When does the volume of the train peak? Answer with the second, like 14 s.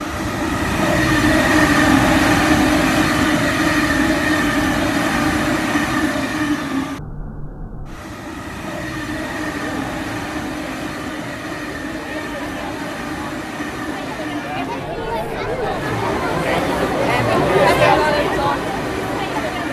2 s.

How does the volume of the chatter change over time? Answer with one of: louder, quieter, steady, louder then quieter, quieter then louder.
louder.